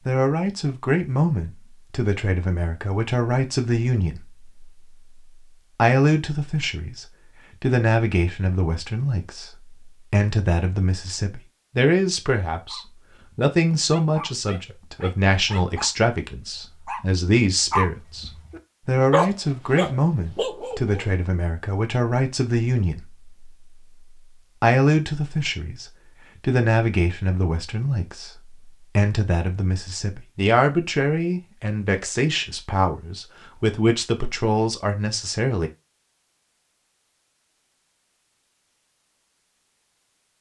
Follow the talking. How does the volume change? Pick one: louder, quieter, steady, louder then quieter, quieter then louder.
steady.